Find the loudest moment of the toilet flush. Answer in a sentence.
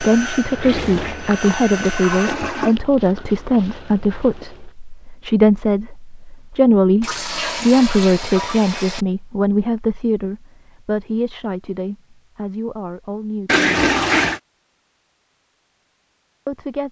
The loudest moment of the toilet flush is at 14 seconds.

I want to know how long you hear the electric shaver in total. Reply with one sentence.
You can't hear the electric shaver here.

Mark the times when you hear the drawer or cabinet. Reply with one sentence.
You can't hear the drawer or cabinet here.